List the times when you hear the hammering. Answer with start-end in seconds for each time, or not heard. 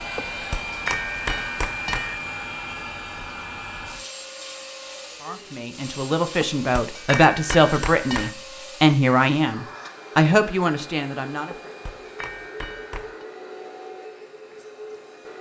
0.1-2.1, 6.4-8.3, 11.5-13.2.